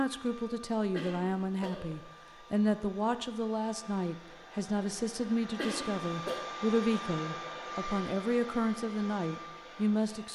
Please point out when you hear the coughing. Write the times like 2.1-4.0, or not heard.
0.9-2.1, 5.5-6.5.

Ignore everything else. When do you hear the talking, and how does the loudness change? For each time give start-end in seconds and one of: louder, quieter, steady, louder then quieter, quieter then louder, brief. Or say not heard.
0.0-10.3 steady.